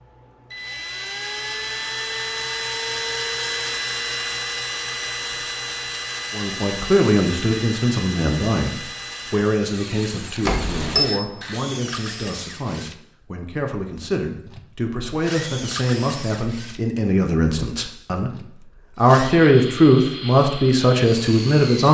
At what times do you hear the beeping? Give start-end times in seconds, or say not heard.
10.4-11.1.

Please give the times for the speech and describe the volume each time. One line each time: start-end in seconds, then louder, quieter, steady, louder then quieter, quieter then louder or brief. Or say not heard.
6.3-21.8 quieter then louder.